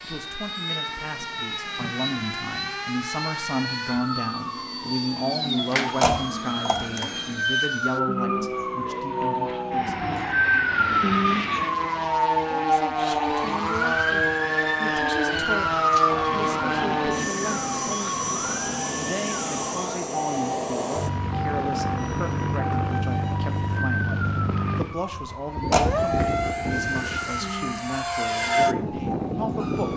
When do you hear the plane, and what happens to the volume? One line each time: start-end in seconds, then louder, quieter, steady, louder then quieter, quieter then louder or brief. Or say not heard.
0.0-29.9 louder.